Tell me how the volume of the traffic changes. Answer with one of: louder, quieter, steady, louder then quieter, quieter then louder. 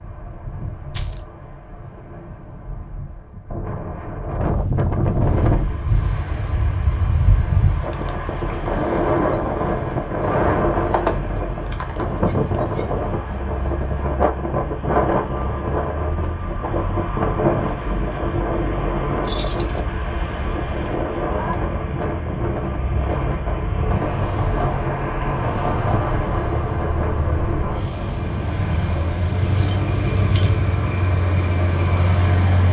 louder.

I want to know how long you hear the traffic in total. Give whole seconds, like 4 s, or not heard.
27 s.